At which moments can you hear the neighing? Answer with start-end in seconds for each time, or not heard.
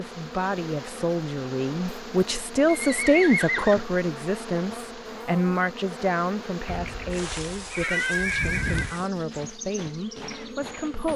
2.6-3.9, 6.7-9.0.